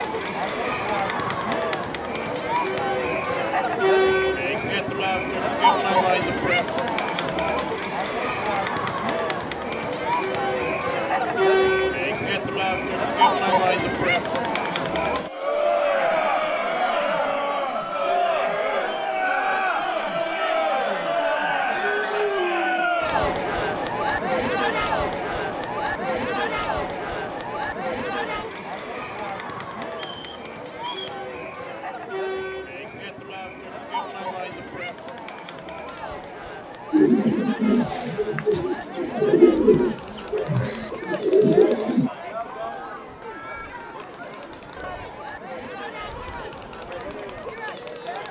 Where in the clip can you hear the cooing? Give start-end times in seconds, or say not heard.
36.9-42.1.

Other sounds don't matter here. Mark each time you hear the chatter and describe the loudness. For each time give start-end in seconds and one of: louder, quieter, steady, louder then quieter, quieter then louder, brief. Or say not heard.
0.0-48.2 quieter.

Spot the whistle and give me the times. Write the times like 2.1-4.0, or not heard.
29.9-31.2.